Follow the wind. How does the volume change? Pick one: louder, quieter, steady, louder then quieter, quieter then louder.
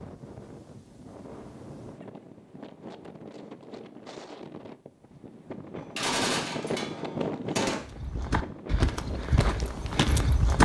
louder then quieter.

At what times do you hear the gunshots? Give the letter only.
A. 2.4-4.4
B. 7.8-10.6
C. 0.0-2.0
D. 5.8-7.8
D.